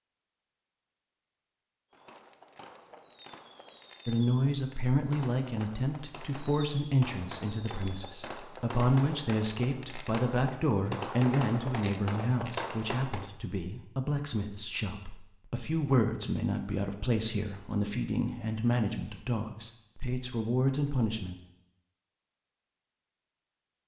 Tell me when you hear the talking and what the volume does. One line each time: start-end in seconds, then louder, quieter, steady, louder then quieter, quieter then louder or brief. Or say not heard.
4.0-21.4 steady.